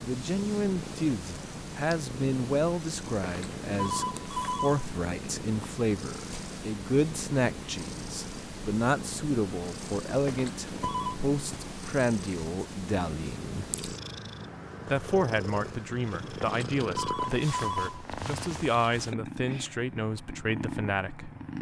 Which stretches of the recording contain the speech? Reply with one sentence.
The speech can be heard from 0.0 to 13.7 s and from 14.9 to 21.3 s.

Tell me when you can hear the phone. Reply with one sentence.
The phone can be heard from 3.1 to 4.8 s, from 10.1 to 11.2 s and from 16.2 to 18.1 s.